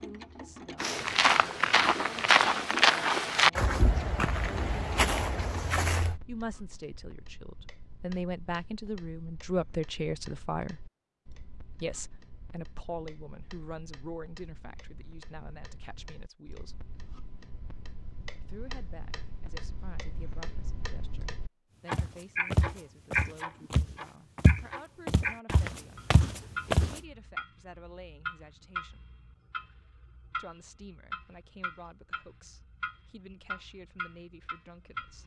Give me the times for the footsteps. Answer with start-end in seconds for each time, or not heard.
0.8-6.2, 21.9-27.0.